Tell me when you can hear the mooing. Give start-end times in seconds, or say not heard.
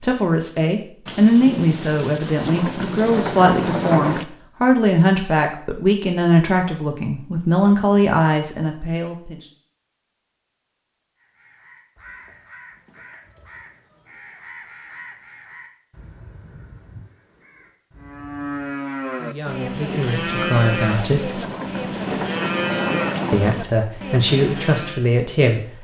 17.9-25.1.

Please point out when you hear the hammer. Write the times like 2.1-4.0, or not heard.
not heard.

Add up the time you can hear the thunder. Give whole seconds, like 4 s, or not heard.
7 s.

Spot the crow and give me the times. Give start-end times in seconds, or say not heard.
11.2-18.6.